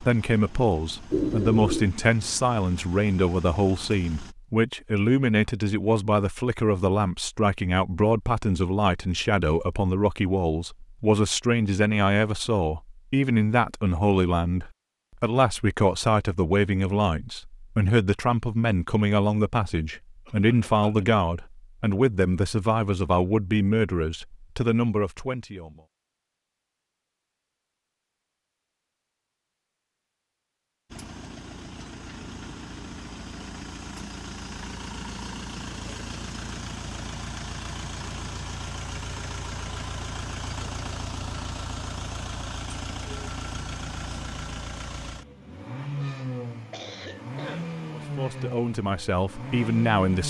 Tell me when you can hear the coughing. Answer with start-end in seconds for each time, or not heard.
1.1-1.9, 20.2-21.1, 46.7-47.7.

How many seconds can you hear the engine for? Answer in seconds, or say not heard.
24 s.